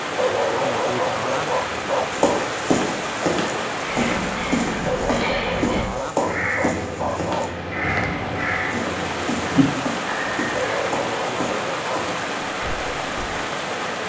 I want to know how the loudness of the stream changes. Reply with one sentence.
The volume of the stream goes down, then up.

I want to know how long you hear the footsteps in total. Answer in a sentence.
You can hear the footsteps for 11 seconds altogether.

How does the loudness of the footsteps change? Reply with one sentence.
The loudness of the footsteps goes down.